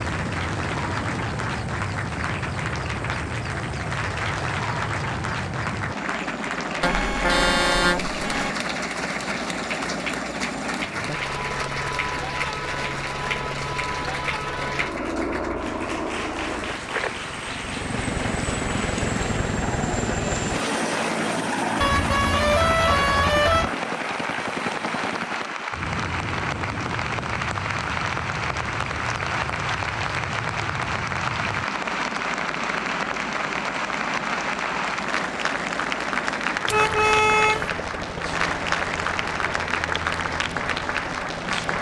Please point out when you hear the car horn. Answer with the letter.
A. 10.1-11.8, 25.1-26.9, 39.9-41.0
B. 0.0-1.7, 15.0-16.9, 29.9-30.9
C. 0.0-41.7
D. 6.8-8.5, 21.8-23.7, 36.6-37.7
D.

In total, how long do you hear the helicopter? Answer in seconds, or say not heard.
42 s.